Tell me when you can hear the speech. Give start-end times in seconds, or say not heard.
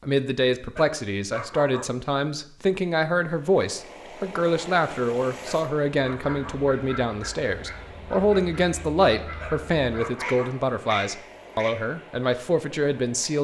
0.0-13.3.